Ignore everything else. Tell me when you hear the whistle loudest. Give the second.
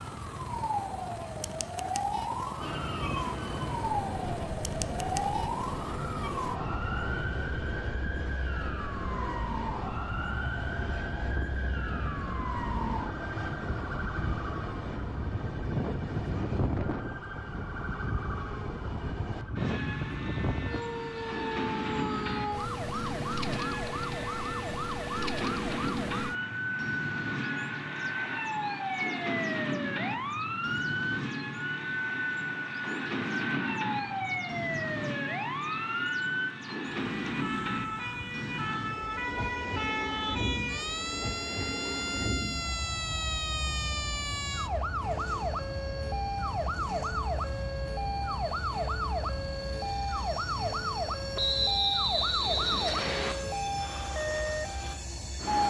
52 s.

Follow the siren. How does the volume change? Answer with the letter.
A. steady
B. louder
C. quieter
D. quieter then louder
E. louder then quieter
A.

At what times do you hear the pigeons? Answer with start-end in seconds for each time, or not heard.
not heard.